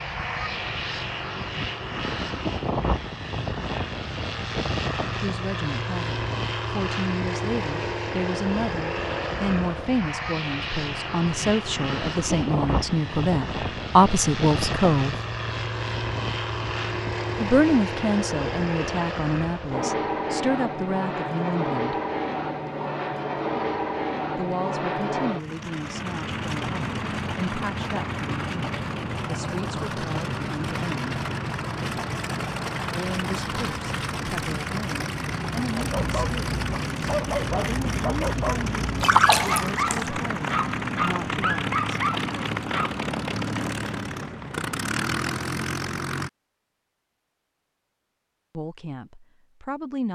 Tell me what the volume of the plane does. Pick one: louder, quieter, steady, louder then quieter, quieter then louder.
steady.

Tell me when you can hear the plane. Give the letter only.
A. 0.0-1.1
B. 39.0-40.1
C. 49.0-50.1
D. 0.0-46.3
D.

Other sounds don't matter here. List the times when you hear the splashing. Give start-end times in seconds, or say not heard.
39.0-40.1.